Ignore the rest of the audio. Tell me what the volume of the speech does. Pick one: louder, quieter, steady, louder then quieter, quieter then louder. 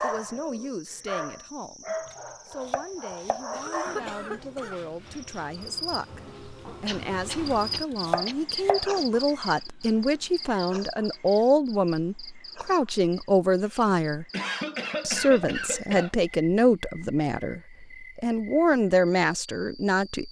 louder.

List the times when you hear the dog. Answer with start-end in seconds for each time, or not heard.
0.0-4.4.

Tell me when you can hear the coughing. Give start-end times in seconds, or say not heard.
3.5-4.8, 6.8-8.3, 13.7-16.1.